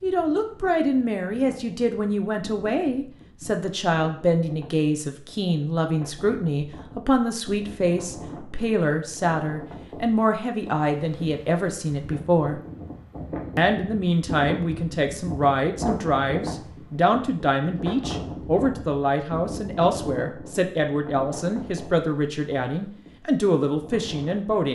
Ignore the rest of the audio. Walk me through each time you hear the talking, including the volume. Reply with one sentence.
The talking can be heard from 0.0 to 12.6 s, at a steady volume; and from 13.6 to 24.6 s, at a steady volume.